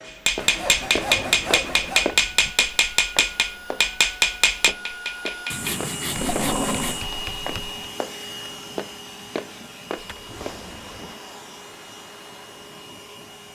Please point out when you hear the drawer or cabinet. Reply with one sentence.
The drawer or cabinet can be heard from 0.8 to 2.5 s, from 6.0 to 7.0 s and from 9.9 to 11.2 s.